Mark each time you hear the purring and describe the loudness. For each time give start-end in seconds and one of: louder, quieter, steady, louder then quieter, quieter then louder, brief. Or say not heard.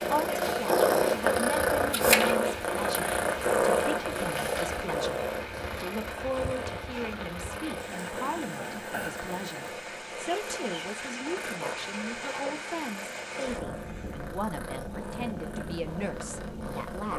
0.0-17.1 quieter.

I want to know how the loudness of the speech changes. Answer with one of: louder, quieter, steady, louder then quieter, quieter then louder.
steady.